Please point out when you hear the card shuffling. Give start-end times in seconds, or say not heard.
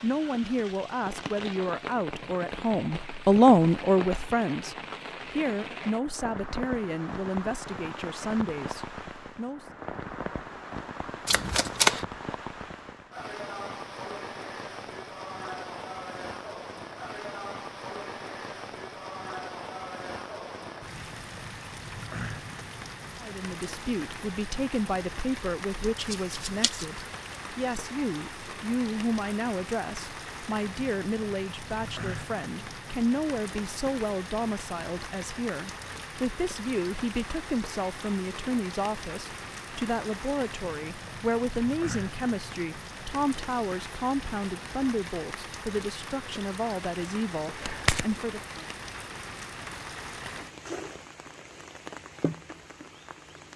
11.2-12.1, 26.0-26.9, 47.6-48.0.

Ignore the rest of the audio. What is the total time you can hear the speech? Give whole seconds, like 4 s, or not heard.
35 s.